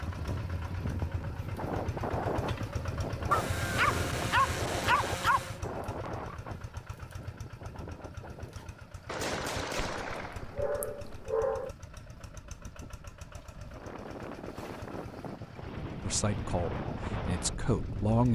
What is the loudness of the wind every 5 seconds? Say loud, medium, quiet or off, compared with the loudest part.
loud, medium, medium, loud.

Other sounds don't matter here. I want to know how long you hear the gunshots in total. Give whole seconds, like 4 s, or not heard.
2 s.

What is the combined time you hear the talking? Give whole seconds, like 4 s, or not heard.
2 s.